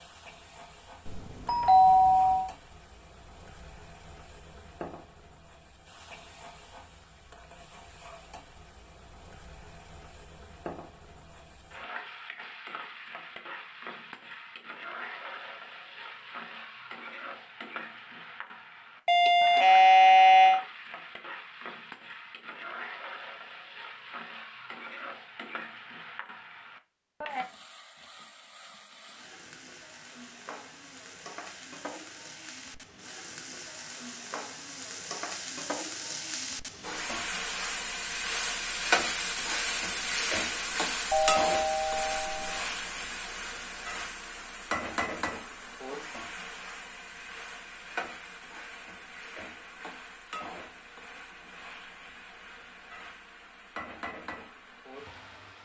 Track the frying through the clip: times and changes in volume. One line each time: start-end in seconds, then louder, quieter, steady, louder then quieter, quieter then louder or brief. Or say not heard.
0.0-55.5 louder then quieter.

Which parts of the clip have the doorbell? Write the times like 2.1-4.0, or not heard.
1.1-2.5, 19.1-20.6, 41.1-42.6.